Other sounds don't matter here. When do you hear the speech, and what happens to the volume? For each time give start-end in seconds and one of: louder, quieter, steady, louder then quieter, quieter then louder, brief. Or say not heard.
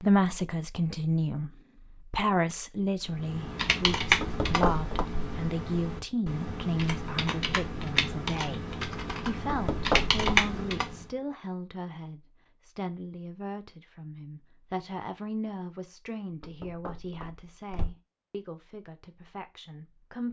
0.0-20.2 quieter.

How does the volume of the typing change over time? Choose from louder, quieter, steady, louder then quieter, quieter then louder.
quieter then louder.